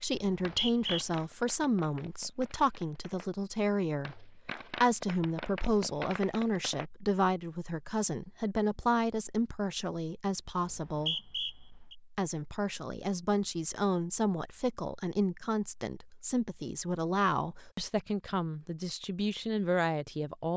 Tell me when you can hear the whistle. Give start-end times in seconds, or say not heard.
0.1-1.1, 10.7-11.9.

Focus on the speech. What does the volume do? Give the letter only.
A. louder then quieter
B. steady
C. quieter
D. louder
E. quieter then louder
B.